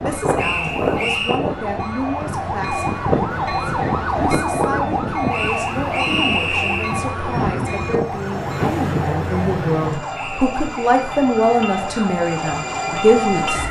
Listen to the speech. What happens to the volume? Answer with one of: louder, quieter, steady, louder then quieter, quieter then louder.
louder.